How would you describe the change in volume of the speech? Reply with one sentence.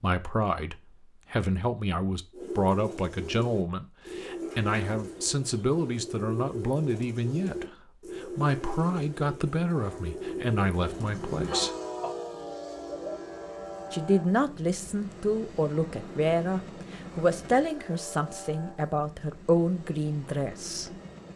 The volume of the speech stays about the same.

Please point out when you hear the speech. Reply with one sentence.
You can hear the speech from 0.0 to 11.8 s and from 13.9 to 20.9 s.